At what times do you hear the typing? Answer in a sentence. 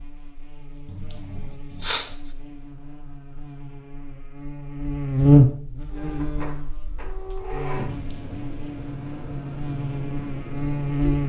The typing can't be heard in this clip.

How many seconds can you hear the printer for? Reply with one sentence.
The printer can be heard for 5 seconds in total.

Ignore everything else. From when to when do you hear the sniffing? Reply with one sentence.
The sniffing can be heard from 0.8 to 2.3 s and from 7.9 to 8.6 s.